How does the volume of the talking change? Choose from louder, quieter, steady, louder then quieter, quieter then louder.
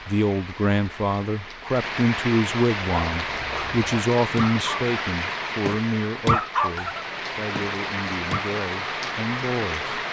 quieter.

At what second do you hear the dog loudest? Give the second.
6 s.